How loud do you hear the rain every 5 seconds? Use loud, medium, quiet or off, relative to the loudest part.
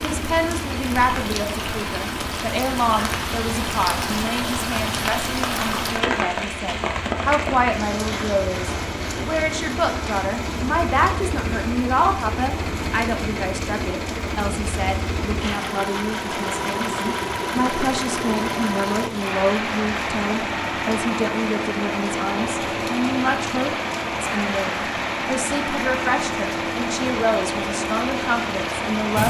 loud, loud, medium, medium, medium, medium.